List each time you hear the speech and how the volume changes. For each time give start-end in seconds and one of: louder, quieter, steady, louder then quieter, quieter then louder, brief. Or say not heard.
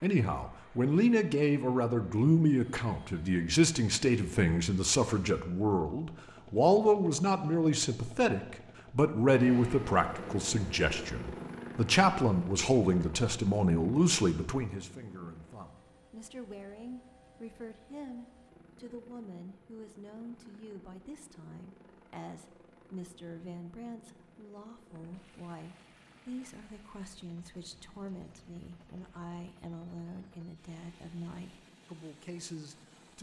0.0-33.1 quieter.